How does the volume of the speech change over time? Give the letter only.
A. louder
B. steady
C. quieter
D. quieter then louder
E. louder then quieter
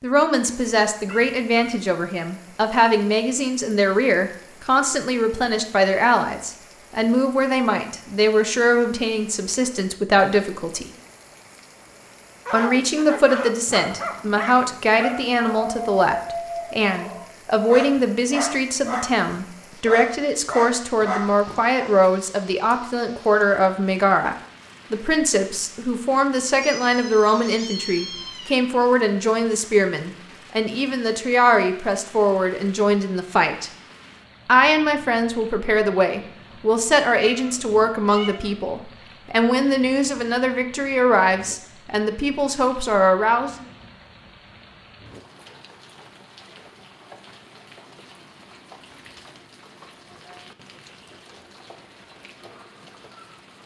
B.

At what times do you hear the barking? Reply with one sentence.
You can hear the barking from 12.4 to 21.9 s.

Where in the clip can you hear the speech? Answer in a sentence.
You can hear the speech from 0.0 to 10.9 s, from 12.5 to 33.7 s and from 34.5 to 43.6 s.